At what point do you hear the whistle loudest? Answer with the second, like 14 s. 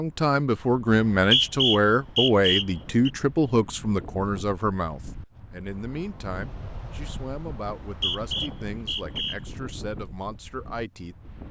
1 s.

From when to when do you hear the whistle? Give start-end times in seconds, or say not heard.
0.9-3.1, 7.8-9.3.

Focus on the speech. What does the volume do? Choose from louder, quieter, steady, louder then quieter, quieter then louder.
quieter.